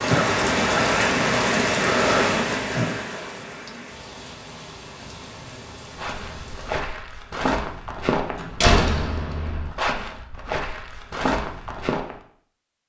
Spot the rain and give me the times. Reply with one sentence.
You can hear the rain from 0.0 to 6.8 s.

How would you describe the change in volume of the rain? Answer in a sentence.
The loudness of the rain goes down.